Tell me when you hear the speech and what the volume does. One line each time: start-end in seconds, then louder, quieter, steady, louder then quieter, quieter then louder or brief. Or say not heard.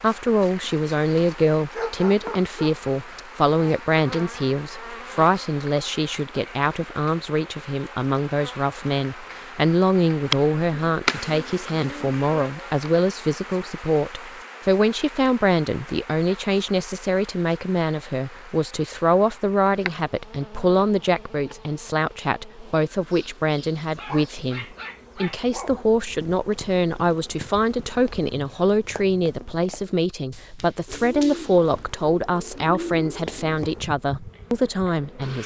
0.0-35.4 steady.